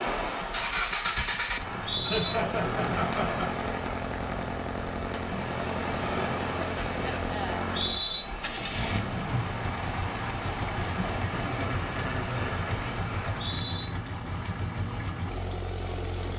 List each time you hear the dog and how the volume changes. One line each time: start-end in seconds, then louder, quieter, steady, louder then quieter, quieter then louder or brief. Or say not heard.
not heard.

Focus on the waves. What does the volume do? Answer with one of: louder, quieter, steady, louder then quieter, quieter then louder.
steady.